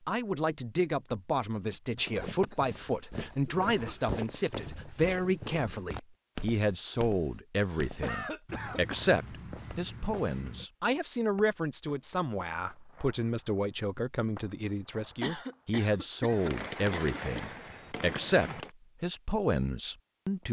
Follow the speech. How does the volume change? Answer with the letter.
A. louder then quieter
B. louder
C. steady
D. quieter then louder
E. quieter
C.